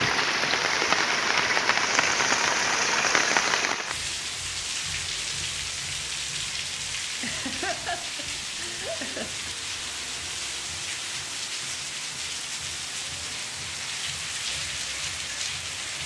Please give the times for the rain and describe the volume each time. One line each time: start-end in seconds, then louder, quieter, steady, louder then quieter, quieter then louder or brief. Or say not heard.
0.0-16.0 quieter.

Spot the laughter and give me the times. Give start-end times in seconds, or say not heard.
7.2-9.6.